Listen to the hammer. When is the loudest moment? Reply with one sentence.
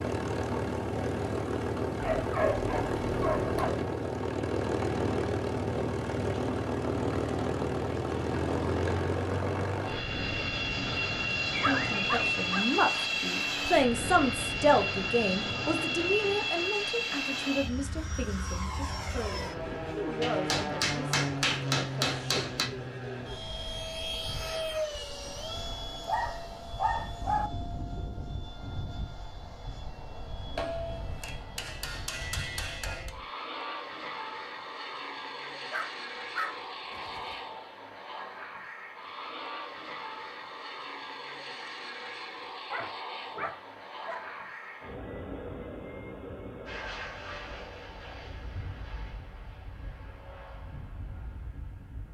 The loudest moment of the hammer is at 22 seconds.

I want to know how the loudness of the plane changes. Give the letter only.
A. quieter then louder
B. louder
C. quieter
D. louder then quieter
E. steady
C.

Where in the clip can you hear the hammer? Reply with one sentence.
The hammer can be heard from 20.2 to 22.7 s and from 30.6 to 33.1 s.